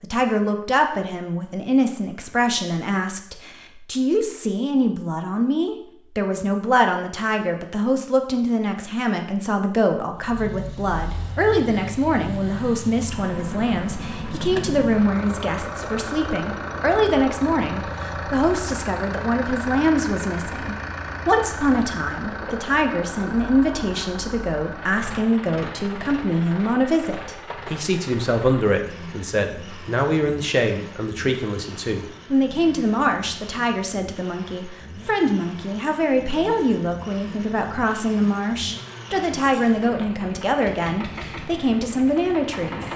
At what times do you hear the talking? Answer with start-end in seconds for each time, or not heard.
0.0-42.9.